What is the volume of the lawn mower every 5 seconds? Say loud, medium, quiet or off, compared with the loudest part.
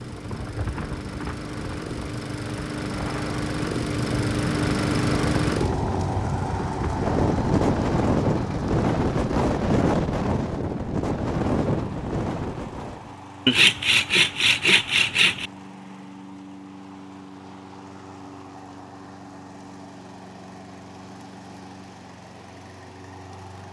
loud, loud, quiet, quiet, quiet.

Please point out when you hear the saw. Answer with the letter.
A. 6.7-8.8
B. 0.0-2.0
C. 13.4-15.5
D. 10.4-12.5
C.